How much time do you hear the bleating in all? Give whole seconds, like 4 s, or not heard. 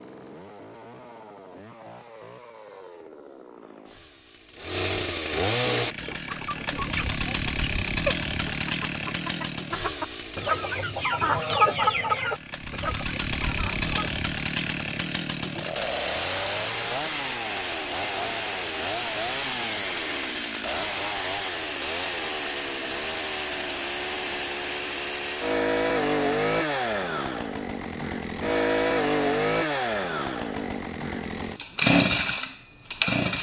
not heard.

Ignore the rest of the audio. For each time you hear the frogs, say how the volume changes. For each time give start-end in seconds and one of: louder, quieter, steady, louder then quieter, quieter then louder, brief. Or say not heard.
not heard.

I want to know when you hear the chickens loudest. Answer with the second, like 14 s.
12 s.